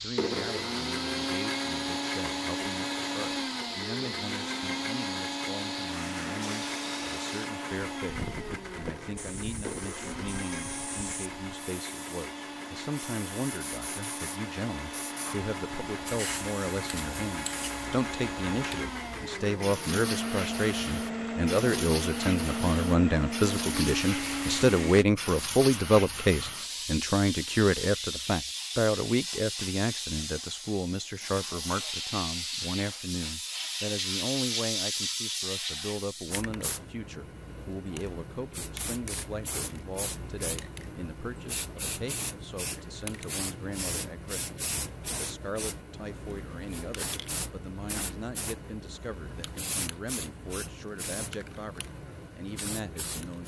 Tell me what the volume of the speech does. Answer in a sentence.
The loudness of the speech goes up, then down.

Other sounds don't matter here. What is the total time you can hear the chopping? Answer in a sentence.
You can't hear the chopping here.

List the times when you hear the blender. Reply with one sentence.
The blender can be heard from 0.0 to 25.1 s.